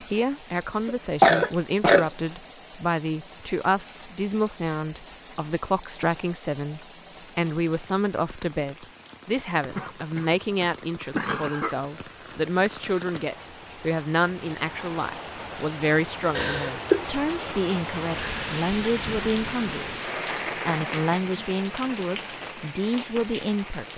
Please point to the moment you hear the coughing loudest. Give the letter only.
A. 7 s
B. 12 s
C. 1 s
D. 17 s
C.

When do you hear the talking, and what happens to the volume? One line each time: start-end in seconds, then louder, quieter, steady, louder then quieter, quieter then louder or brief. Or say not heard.
0.0-23.9 steady.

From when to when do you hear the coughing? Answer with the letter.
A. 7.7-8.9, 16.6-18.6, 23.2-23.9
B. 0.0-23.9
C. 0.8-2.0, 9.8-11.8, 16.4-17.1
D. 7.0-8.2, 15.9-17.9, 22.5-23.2
C.